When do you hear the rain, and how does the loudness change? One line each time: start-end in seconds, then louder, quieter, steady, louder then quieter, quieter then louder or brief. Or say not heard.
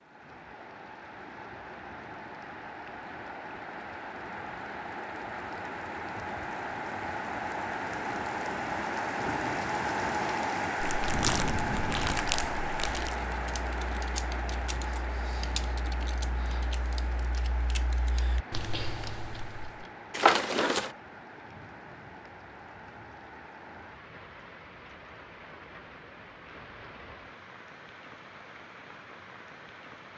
0.0-30.1 louder then quieter.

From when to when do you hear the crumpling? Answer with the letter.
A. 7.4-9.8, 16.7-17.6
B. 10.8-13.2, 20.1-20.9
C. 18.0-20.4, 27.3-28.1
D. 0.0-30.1
B.